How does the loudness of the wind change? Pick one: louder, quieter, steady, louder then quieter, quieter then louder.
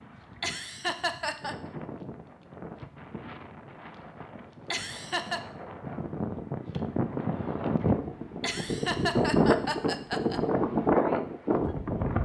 louder.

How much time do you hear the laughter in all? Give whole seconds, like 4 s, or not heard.
4 s.